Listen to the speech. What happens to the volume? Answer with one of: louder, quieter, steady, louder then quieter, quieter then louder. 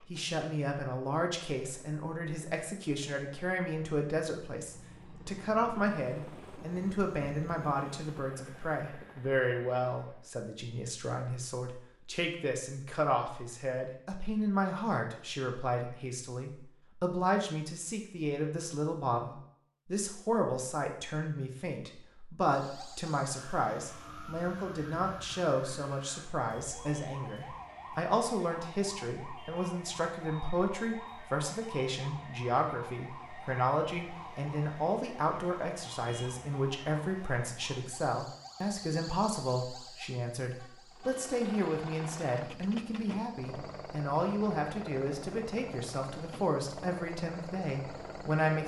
steady.